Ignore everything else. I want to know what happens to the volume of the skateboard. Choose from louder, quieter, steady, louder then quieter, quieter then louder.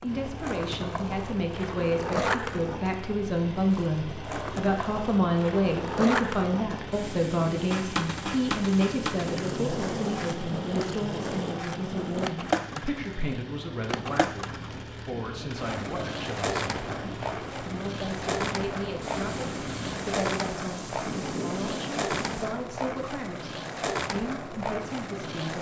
steady.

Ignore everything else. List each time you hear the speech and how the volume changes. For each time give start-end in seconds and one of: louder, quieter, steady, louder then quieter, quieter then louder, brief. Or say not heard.
0.0-25.5 quieter.